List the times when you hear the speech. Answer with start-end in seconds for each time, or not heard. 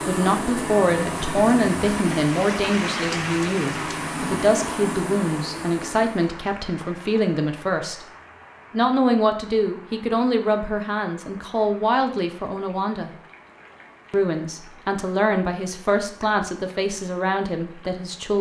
0.1-8.1, 8.7-13.1, 14.1-18.3.